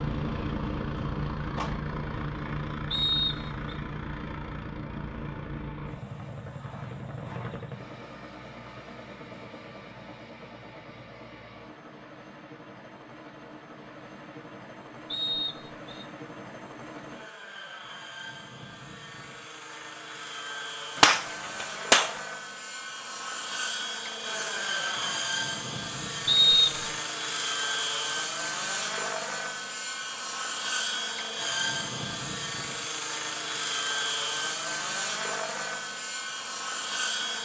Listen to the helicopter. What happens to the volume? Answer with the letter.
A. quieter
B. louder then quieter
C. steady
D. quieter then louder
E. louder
D.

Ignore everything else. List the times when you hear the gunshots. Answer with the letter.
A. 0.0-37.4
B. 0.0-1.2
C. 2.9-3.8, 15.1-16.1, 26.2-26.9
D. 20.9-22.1
D.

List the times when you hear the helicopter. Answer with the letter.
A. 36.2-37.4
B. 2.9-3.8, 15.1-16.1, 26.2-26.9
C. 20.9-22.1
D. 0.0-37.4
D.